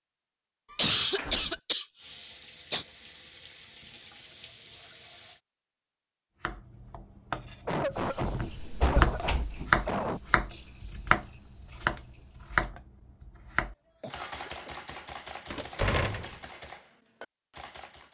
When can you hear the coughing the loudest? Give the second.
1 s.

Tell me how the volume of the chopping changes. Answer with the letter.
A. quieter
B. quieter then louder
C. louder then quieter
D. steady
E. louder
C.